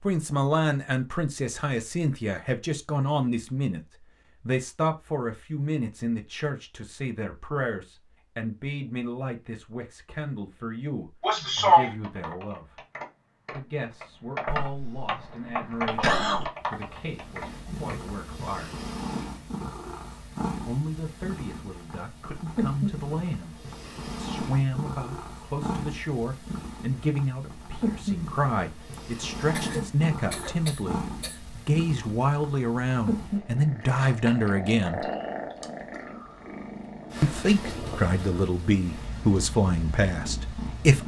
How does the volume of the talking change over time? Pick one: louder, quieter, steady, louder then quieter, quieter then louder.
quieter then louder.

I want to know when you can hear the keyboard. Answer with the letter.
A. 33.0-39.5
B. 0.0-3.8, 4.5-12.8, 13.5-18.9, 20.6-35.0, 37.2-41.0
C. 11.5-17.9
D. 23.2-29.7
C.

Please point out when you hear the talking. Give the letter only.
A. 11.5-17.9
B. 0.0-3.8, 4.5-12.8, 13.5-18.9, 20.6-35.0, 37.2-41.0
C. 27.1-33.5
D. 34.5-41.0
B.